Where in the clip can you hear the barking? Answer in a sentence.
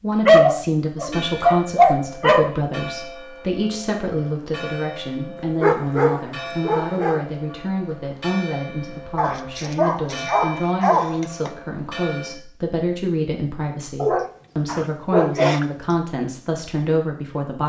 You can hear the barking from 0.2 to 2.5 s, from 5.6 to 7.2 s, from 9.2 to 11.5 s and from 14.0 to 15.7 s.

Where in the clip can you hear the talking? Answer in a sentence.
The talking can be heard from 0.0 to 17.6 s.